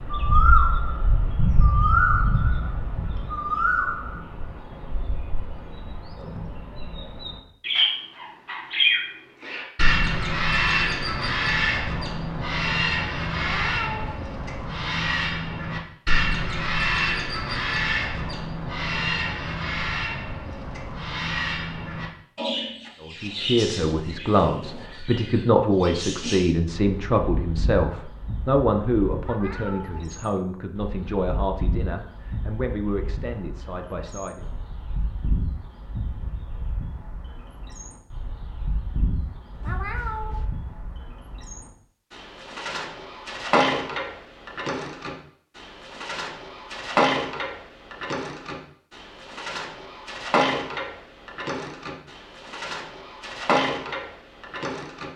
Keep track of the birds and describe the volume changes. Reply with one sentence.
The loudness of the birds goes down, then up.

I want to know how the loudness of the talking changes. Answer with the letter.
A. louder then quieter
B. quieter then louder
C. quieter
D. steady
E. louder
C.